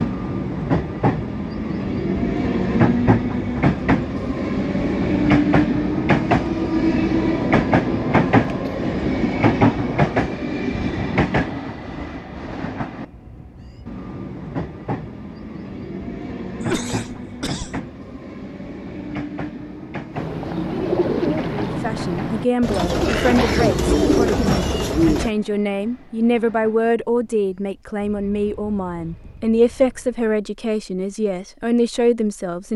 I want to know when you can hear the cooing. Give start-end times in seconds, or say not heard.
20.1-25.3.